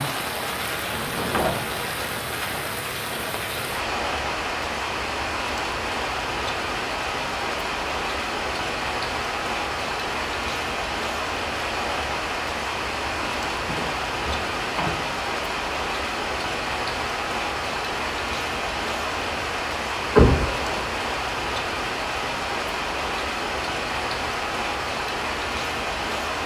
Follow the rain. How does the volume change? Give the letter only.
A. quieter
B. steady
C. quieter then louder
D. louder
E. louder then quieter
B.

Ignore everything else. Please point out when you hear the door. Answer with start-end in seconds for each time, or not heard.
0.8-1.8, 13.2-14.9, 20.1-20.9.